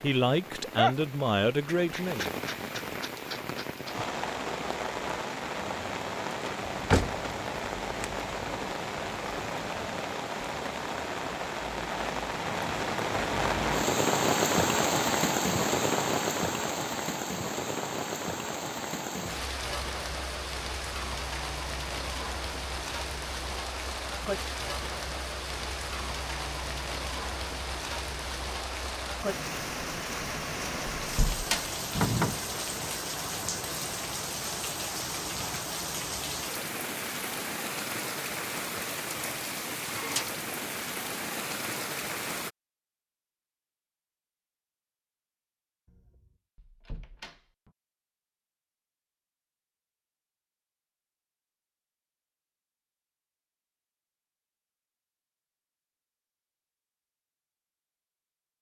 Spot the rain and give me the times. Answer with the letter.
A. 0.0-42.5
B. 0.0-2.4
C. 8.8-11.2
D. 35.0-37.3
A.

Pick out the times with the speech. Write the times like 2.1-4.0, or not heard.
0.0-2.4.